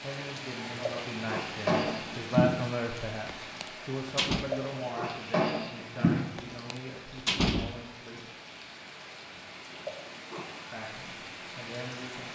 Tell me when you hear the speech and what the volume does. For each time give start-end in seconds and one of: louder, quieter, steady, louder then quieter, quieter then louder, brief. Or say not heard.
0.0-8.2 louder then quieter
10.7-12.3 brief.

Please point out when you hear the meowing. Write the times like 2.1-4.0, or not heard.
0.7-2.5, 4.3-6.2, 9.7-10.7.